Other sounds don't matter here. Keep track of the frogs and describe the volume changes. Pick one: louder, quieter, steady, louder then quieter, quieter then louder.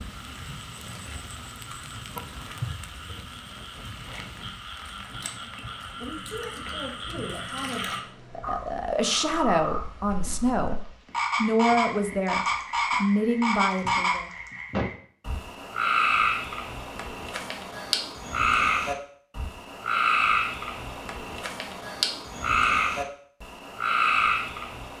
louder.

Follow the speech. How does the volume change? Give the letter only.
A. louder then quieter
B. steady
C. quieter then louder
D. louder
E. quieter
D.